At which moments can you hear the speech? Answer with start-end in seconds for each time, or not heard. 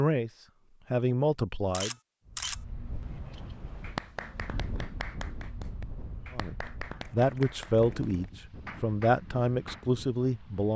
0.0-1.9, 6.3-10.7.